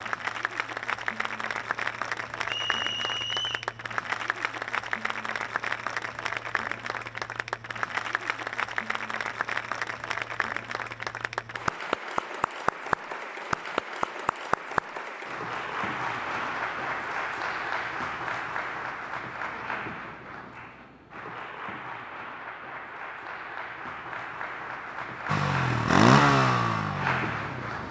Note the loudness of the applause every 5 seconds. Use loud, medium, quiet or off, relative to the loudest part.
loud, loud, loud, loud, medium, loud.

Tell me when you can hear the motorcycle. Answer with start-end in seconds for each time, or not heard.
25.2-27.8.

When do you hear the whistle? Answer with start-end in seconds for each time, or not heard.
2.5-3.7.